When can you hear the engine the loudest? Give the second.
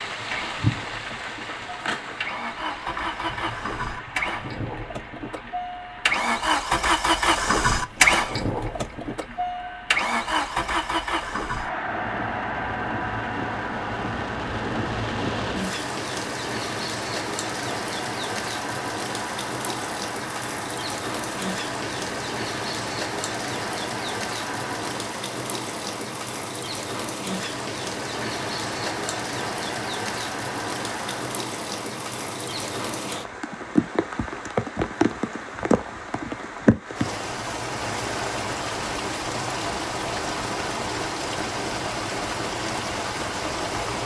8 s.